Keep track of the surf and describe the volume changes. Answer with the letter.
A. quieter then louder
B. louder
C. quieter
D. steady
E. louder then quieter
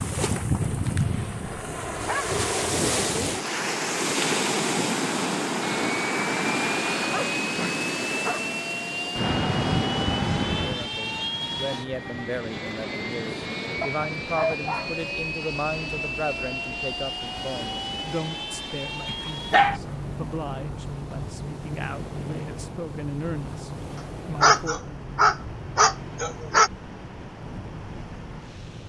C.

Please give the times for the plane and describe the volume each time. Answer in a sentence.
The plane can be heard from 5.6 to 28.8 s, getting quieter.